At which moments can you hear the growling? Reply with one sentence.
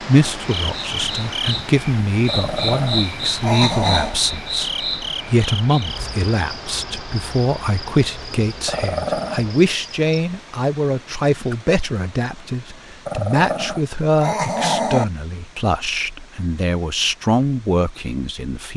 You can hear the growling from 2.2 to 4.2 s, from 8.7 to 9.4 s and from 13.1 to 15.1 s.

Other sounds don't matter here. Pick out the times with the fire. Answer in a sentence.
You can't hear the fire here.